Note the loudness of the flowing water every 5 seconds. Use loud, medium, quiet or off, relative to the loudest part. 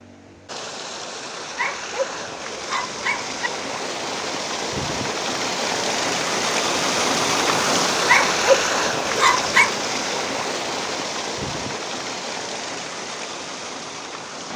medium, loud, medium.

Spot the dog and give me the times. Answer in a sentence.
You can hear the dog from 1.6 to 3.5 s and from 8.1 to 9.8 s.